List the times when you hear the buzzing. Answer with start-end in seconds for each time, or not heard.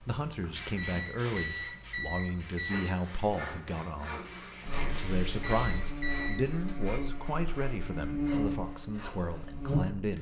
4.7-10.1.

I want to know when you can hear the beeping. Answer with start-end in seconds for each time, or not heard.
0.7-2.9, 5.4-6.3.